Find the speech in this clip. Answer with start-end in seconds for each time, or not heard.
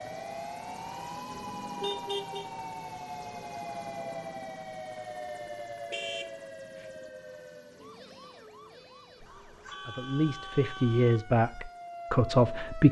9.8-12.8.